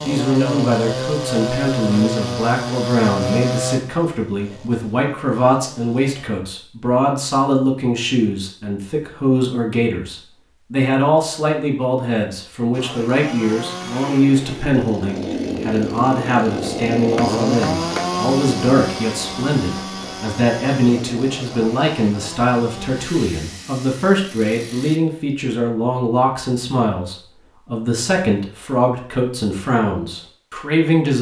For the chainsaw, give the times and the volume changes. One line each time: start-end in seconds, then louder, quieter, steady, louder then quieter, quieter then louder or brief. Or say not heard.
0.0-6.3 quieter
12.7-25.0 louder then quieter.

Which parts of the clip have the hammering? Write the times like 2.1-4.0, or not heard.
17.1-18.1.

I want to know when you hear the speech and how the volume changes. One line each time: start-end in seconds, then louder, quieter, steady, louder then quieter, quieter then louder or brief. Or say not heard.
0.0-31.1 steady.